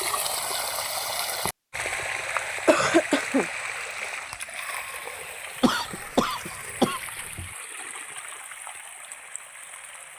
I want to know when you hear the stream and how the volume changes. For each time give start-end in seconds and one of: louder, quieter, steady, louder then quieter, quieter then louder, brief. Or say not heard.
0.0-10.1 quieter.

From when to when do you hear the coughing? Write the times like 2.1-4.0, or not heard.
2.5-3.5, 5.6-7.5.